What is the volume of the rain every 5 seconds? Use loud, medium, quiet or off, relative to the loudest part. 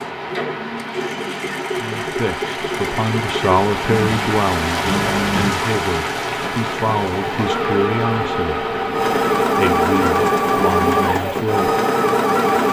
loud, loud, medium.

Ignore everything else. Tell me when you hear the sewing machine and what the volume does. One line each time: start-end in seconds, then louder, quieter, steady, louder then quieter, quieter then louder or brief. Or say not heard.
0.0-12.6 louder.